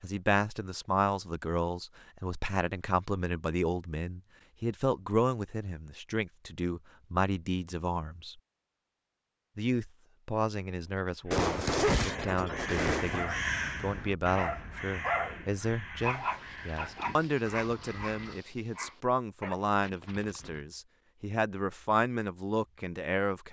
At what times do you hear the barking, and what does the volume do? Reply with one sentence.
You can hear the barking briefly from 13.1 to 13.5 s; and from 14.3 to 20.6 s, getting quieter.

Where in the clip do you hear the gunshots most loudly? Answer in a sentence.
The loudest moment of the gunshots is at 12 seconds.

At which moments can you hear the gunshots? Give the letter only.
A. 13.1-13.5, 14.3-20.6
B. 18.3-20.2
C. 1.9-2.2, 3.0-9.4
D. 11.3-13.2
D.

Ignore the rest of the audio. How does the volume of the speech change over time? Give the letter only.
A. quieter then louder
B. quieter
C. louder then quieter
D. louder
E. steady
E.